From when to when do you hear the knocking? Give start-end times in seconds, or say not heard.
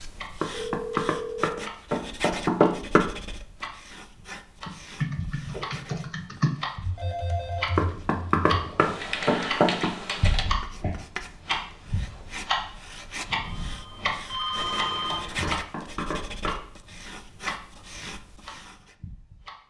0.4-3.0, 7.8-9.9, 15.4-16.6.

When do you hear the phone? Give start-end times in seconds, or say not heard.
0.5-1.7, 7.0-7.8, 13.4-15.6.